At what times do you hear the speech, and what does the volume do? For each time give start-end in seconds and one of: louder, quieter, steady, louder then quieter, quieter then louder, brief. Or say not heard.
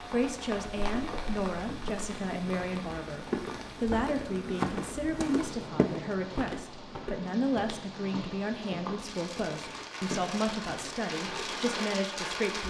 0.1-12.6 steady.